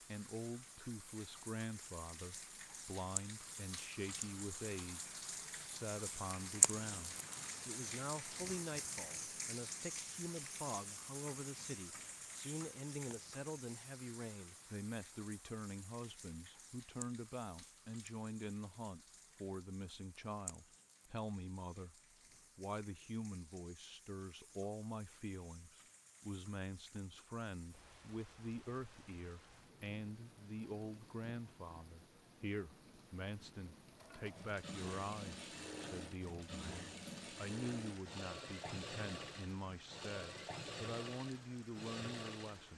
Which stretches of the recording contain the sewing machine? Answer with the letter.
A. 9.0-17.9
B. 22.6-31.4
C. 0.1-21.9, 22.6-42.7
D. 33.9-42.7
D.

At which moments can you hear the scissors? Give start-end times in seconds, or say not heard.
not heard.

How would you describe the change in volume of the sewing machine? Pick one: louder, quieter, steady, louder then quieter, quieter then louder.
steady.